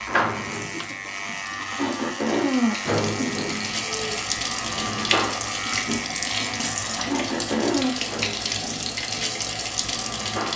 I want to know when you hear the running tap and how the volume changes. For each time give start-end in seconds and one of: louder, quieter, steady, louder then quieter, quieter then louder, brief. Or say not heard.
0.0-10.5 louder.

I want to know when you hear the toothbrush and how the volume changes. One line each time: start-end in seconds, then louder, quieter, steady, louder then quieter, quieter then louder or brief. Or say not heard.
not heard.